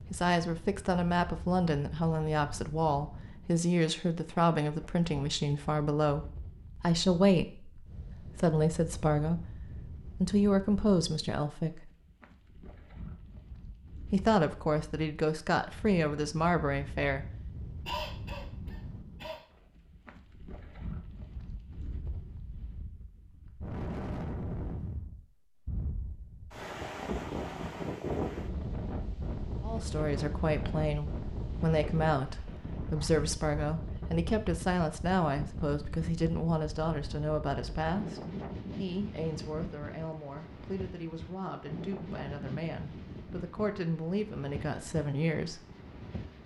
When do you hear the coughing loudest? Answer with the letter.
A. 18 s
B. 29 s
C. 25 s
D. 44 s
A.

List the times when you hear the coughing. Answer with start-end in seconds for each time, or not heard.
17.9-19.4.